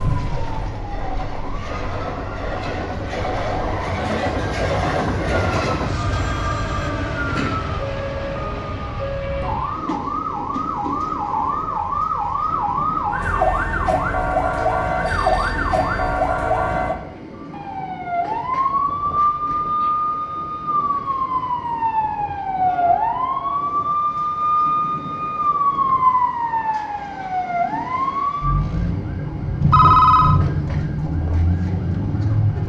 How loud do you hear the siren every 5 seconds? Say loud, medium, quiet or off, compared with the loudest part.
medium, medium, loud, loud, loud, loud, loud.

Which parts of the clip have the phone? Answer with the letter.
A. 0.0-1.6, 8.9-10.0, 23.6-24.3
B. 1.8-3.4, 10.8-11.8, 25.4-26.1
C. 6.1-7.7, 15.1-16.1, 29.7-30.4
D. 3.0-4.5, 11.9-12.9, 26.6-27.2
C.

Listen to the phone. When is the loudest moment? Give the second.
30 s.